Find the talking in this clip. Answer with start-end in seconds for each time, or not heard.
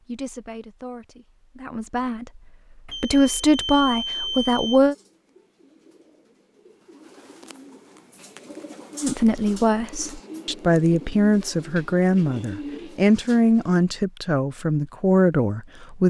0.1-5.0, 9.0-16.0.